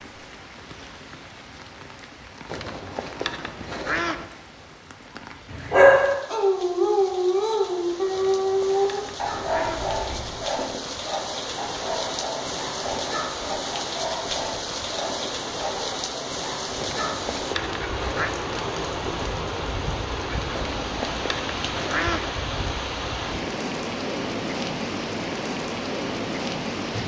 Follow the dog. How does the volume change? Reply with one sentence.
The loudness of the dog goes down.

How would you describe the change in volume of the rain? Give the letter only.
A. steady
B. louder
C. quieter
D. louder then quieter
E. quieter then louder
B.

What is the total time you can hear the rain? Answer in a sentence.
The rain can be heard for 27 seconds in total.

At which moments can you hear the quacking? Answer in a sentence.
The quacking can be heard from 2.5 to 4.2 s, from 8.1 to 9.9 s, from 16.8 to 18.3 s and from 20.5 to 22.3 s.